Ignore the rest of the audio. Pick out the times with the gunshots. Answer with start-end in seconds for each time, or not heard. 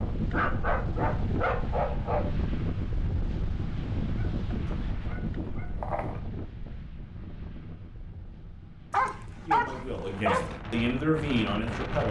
not heard.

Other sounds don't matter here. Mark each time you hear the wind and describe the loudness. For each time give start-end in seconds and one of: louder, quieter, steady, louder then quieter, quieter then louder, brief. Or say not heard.
0.0-12.0 quieter then louder.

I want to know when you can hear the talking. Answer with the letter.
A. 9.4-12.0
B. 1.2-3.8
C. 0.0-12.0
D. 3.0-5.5
A.